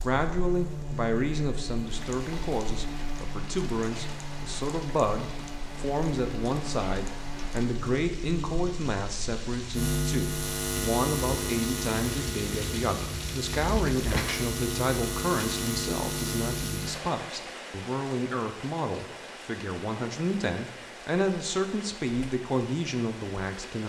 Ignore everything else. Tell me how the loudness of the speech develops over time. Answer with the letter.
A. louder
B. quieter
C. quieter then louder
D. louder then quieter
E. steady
E.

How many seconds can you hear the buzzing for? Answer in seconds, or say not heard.
17 s.